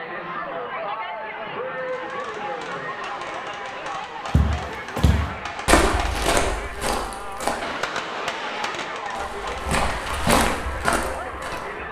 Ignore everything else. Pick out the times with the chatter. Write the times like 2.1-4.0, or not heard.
0.0-11.8.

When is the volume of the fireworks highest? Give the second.
8 s.